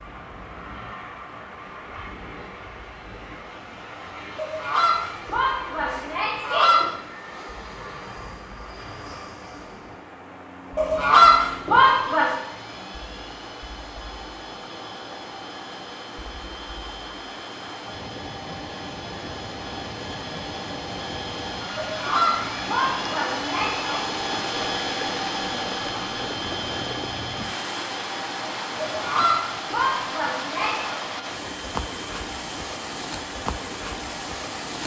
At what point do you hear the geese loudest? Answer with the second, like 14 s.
11 s.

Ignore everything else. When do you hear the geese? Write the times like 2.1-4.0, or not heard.
4.3-6.9, 10.8-12.3, 21.8-24.0, 28.8-31.0.